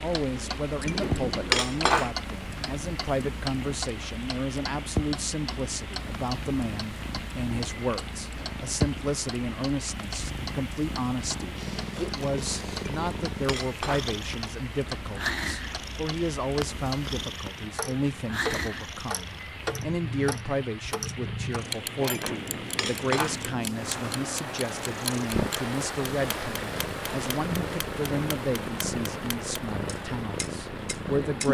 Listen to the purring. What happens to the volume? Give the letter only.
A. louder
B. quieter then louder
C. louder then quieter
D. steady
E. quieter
D.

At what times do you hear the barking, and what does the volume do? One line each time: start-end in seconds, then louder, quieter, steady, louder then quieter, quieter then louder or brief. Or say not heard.
not heard.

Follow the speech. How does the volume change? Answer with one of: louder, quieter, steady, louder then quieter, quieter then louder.
steady.